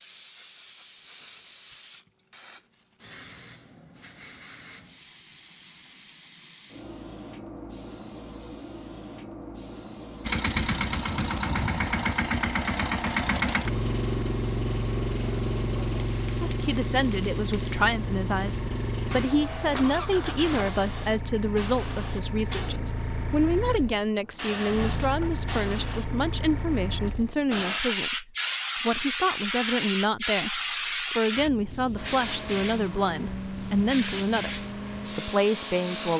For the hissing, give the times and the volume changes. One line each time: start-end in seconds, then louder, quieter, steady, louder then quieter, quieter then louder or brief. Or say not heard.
0.0-36.1 louder.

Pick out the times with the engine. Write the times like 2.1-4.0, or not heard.
10.2-20.7, 31.9-36.1.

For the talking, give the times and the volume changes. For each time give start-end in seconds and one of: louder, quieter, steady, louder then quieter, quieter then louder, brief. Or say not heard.
16.4-36.1 steady.